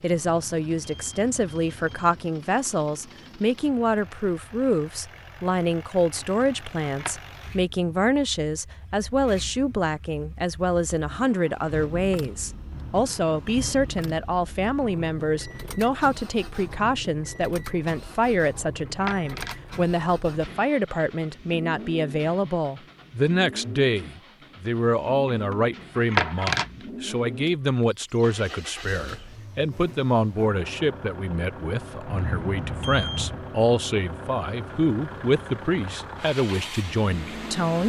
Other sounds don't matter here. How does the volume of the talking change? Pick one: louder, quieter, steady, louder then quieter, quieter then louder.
steady.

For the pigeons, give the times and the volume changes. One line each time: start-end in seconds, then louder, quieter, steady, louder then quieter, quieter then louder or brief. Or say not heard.
not heard.